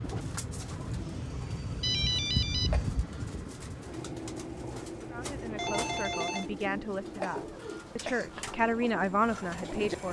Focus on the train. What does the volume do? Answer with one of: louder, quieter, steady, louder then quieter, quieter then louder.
quieter.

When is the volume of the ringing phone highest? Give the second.
2 s.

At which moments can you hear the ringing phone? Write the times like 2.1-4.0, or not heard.
1.8-2.7, 5.5-6.5.